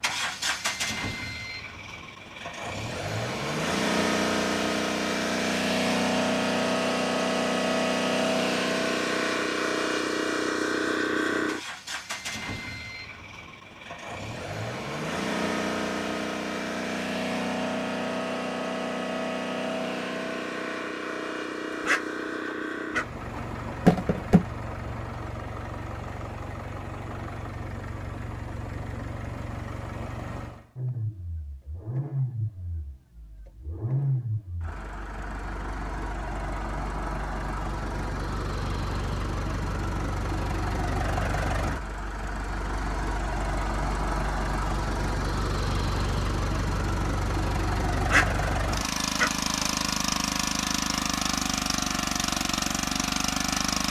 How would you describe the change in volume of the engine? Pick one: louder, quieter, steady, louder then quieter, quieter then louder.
quieter then louder.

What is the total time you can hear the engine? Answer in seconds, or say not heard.
54 s.